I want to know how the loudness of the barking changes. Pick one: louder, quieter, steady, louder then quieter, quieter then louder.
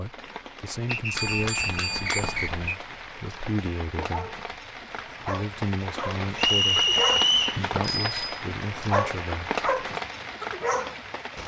louder.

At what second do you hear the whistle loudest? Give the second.
7 s.